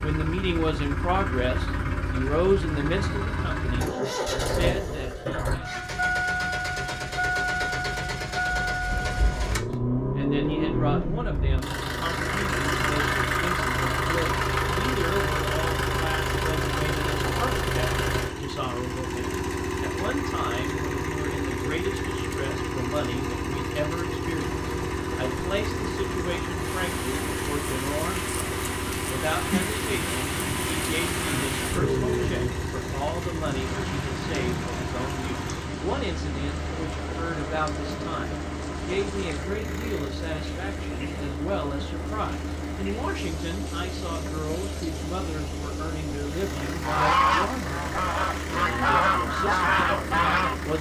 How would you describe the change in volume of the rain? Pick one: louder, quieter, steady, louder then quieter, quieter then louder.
louder then quieter.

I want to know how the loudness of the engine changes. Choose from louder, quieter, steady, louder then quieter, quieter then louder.
quieter.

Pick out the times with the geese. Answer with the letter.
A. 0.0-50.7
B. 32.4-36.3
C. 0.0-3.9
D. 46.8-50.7
D.